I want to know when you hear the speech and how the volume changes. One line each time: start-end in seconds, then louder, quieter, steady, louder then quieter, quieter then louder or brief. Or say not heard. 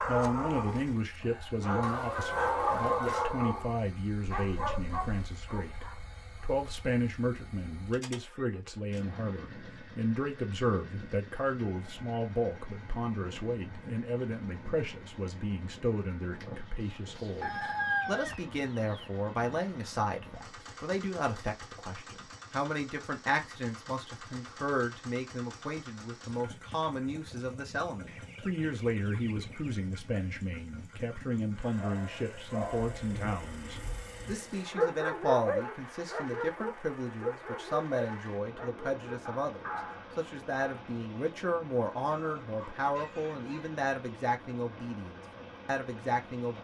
0.0-46.5 steady.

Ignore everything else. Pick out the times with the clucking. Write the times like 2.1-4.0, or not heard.
1.8-3.4, 17.4-19.1, 28.1-29.8, 42.1-43.7.